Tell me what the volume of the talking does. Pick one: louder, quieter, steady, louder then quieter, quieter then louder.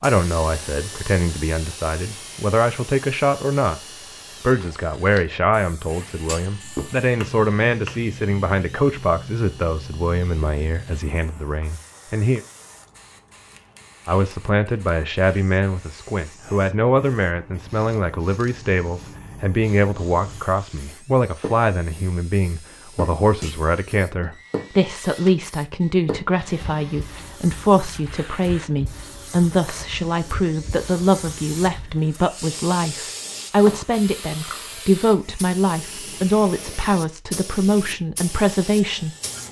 steady.